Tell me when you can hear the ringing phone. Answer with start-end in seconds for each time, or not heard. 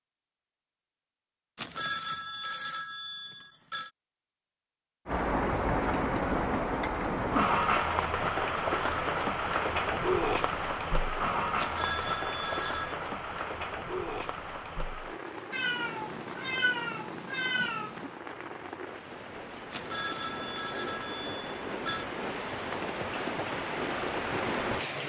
1.6-3.9, 11.6-12.9, 19.7-22.1.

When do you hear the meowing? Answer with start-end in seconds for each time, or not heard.
15.5-18.1.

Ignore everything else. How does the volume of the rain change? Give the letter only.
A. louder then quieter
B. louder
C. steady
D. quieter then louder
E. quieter
D.